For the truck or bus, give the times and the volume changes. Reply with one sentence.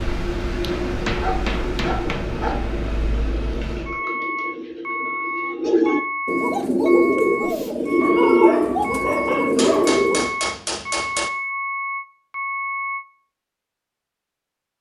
The truck or bus can be heard from 0.0 to 13.1 s, at a steady volume.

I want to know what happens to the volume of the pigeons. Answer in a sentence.
The loudness of the pigeons goes up.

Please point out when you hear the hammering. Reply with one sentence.
You can hear the hammering from 0.6 to 2.3 s and from 9.6 to 11.3 s.